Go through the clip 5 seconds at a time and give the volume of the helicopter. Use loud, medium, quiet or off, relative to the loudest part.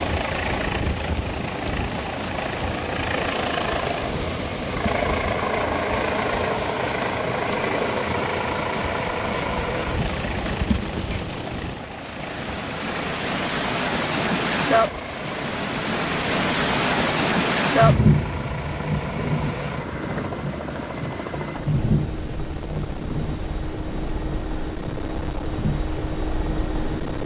loud, loud, medium, medium, medium, medium.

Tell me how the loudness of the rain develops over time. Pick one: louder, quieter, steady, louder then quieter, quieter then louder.
louder then quieter.